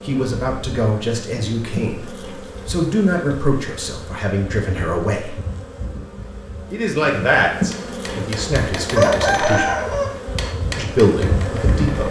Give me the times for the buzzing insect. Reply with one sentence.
The buzzing insect can be heard from 0.0 to 12.0 s.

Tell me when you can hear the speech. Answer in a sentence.
The speech can be heard from 0.1 to 5.3 s, from 6.7 to 9.9 s and from 10.8 to 12.0 s.